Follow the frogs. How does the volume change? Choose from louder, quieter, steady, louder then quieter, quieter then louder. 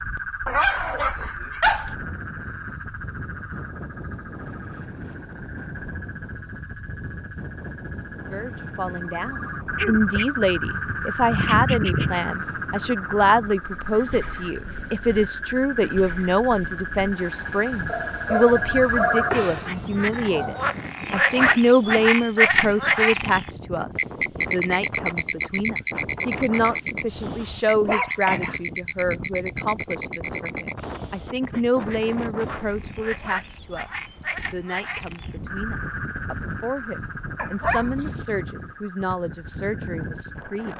louder then quieter.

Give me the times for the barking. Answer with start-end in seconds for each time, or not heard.
0.5-1.9, 9.8-12.2, 17.9-20.7, 27.4-28.6, 37.4-38.2.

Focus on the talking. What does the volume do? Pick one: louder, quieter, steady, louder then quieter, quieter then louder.
quieter.